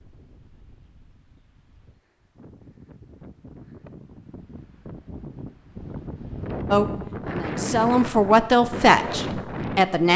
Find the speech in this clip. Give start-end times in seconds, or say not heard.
6.7-10.1.